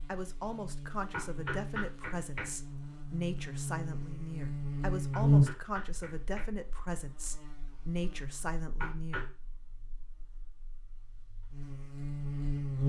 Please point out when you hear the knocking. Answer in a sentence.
You can hear the knocking from 1.1 to 2.5 s, from 5.1 to 6.5 s and from 8.8 to 9.3 s.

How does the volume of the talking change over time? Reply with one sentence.
The loudness of the talking stays about the same.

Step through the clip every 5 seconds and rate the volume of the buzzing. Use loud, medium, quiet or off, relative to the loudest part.
medium, loud, medium.